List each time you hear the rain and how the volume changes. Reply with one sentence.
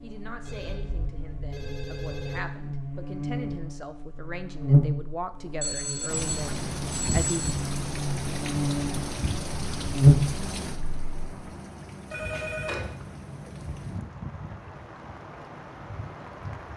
The rain can be heard from 6.0 to 16.7 s, getting quieter.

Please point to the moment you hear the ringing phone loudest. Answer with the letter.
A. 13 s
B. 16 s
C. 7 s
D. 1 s
A.